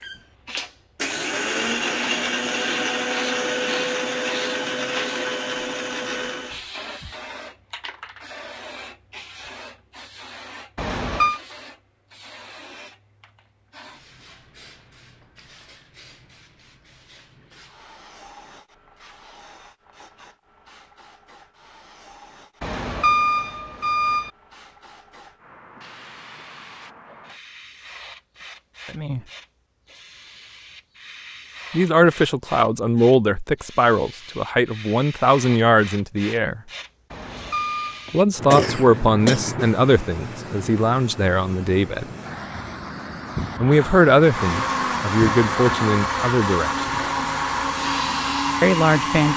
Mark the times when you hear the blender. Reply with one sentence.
The blender can be heard from 0.0 to 6.6 s and from 44.2 to 49.3 s.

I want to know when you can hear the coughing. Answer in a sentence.
The coughing can be heard from 38.0 to 39.6 s.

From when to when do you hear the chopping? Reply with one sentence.
The chopping can't be heard in this clip.